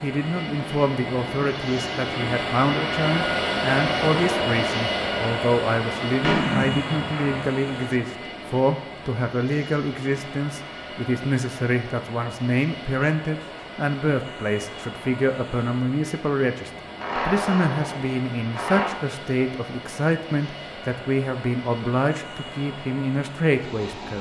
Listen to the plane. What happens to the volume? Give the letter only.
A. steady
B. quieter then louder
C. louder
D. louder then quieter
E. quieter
E.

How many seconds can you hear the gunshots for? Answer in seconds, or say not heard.
3 s.